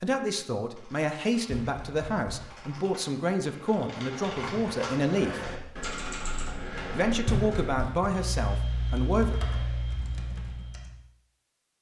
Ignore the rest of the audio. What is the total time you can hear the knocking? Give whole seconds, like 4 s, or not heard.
2 s.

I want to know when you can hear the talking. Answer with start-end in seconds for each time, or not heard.
0.0-5.4, 6.9-9.3.